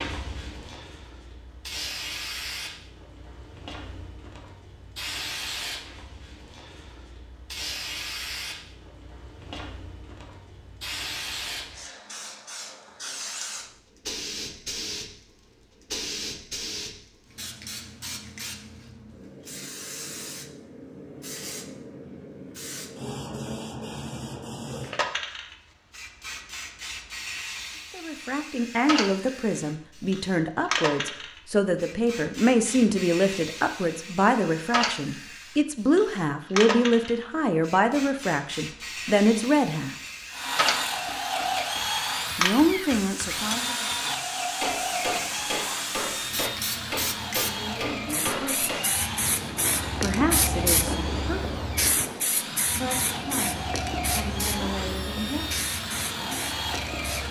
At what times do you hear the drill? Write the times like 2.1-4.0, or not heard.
40.3-57.2.